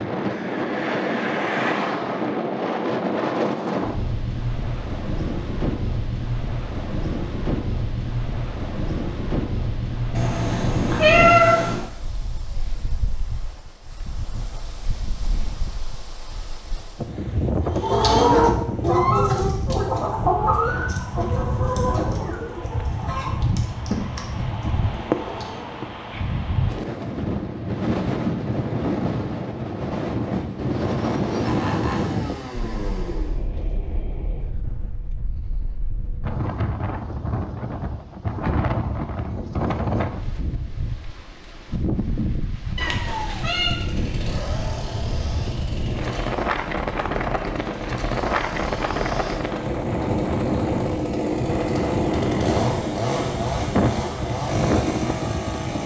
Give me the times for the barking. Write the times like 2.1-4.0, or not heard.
not heard.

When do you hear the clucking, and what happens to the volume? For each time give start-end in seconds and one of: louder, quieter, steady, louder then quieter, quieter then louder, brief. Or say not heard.
17.6-25.9 quieter.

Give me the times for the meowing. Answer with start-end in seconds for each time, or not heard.
10.2-11.8, 42.8-43.8.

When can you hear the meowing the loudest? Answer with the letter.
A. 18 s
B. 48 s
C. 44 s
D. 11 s
D.